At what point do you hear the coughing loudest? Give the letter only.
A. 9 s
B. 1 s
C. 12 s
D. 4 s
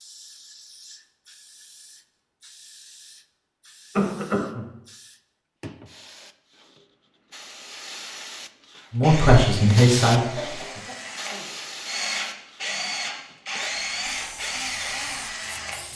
D.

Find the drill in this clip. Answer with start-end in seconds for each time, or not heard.
9.0-15.9.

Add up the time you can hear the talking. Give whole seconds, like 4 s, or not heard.
2 s.